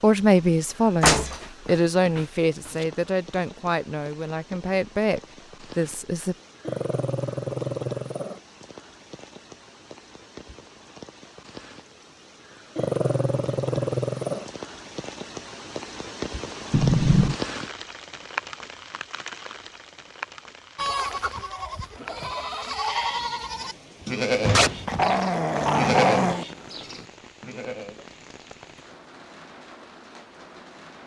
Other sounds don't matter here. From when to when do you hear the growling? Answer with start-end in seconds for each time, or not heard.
6.6-8.4, 12.8-14.5, 24.5-26.4.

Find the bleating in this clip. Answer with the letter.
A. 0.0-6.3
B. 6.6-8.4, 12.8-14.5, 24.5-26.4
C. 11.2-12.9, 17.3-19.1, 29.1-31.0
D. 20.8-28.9
D.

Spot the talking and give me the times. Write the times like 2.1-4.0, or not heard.
0.0-6.3.